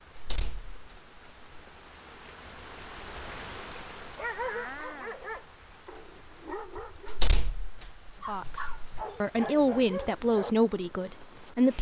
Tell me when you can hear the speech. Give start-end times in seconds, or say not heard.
8.2-11.7.